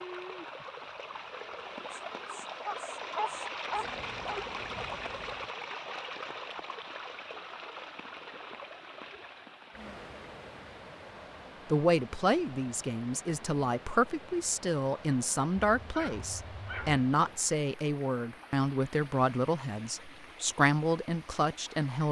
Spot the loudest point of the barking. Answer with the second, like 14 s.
3 s.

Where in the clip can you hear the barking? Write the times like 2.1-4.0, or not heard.
2.6-4.4, 15.8-17.1.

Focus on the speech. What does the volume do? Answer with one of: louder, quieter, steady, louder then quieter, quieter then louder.
steady.